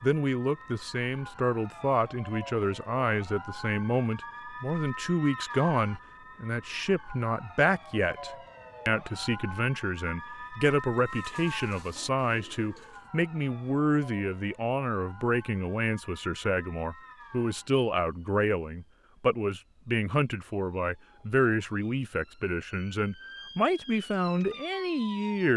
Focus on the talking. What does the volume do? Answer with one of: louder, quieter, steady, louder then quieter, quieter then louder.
steady.